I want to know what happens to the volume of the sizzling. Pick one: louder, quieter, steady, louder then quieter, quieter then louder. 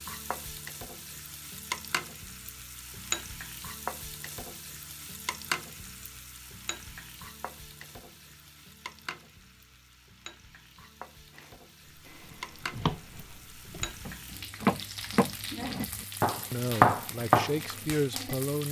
quieter then louder.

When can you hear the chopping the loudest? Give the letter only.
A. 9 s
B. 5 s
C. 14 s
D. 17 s
D.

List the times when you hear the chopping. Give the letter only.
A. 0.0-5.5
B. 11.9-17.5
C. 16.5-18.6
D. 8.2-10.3
B.